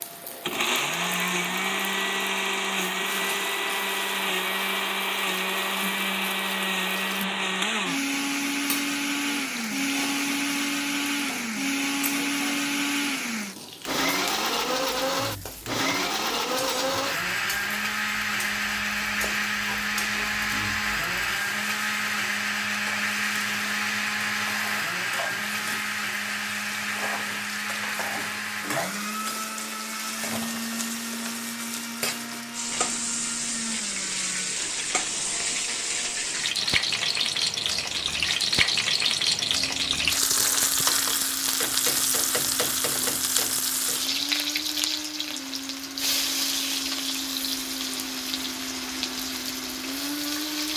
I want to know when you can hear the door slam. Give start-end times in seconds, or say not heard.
not heard.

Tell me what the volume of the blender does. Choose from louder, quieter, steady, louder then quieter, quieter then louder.
quieter.